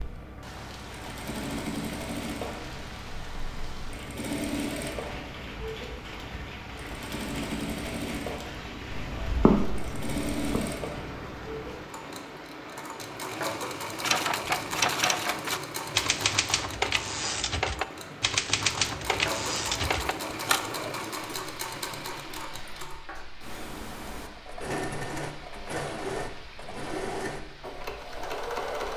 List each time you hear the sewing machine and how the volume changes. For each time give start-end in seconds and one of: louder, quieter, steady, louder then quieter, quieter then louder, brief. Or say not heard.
0.0-28.9 steady.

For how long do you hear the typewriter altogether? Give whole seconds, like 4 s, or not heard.
7 s.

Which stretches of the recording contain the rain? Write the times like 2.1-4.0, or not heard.
0.0-28.9.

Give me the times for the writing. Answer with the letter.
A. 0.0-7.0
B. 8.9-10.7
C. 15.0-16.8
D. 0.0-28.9
B.